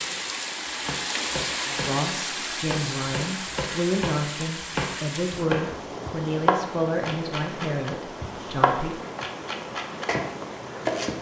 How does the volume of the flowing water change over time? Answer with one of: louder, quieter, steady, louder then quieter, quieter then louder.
quieter.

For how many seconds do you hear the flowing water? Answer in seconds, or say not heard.
11 s.